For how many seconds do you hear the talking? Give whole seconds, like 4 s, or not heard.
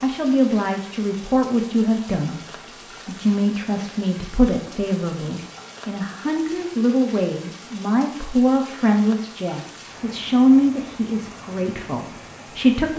13 s.